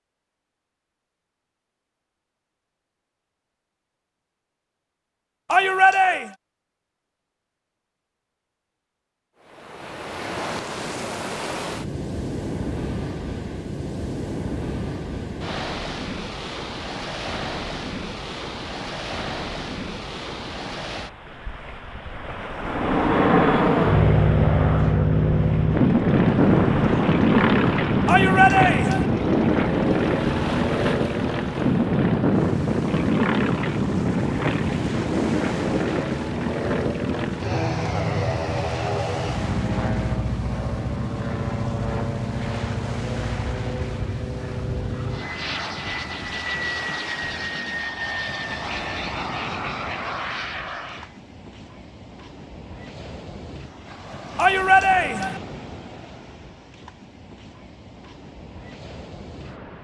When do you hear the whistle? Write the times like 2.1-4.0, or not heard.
not heard.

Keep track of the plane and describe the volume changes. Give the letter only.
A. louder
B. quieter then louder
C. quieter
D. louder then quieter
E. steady
C.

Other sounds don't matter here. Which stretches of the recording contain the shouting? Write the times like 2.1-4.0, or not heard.
5.5-6.3, 28.1-29.1, 54.4-55.4.